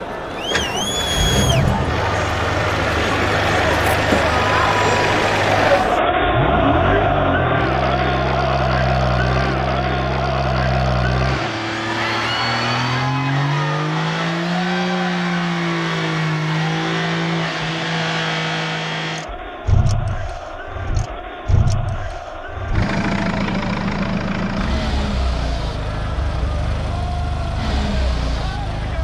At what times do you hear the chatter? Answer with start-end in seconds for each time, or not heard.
0.0-28.9.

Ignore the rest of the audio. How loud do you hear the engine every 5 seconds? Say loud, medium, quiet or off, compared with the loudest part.
loud, loud, loud, loud, loud, medium.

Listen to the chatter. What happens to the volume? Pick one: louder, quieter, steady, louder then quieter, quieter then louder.
quieter.